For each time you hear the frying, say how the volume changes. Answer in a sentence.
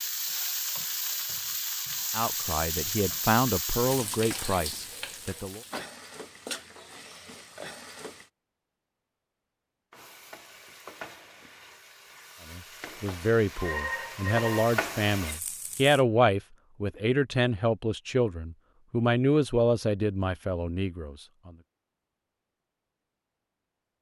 You can hear the frying from 0.0 to 8.3 s, getting quieter; and from 9.9 to 16.1 s, getting quieter then louder.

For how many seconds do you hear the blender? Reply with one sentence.
The blender can't be heard in this clip.